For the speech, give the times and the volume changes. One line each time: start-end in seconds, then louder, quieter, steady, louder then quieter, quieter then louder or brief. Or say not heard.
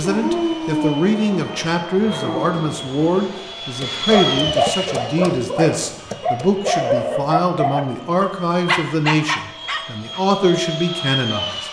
0.0-11.6 steady.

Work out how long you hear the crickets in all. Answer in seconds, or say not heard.
not heard.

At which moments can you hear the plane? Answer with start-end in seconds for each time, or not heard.
0.0-11.6.